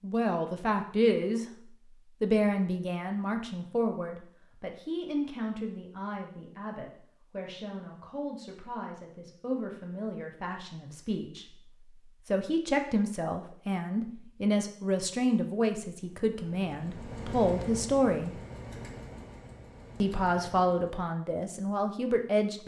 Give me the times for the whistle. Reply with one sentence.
You can't hear the whistle here.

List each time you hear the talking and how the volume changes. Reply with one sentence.
You can hear the talking briefly from 0.0 to 1.4 s; from 2.2 to 18.4 s, getting quieter then louder; and briefly from 20.0 to 22.6 s.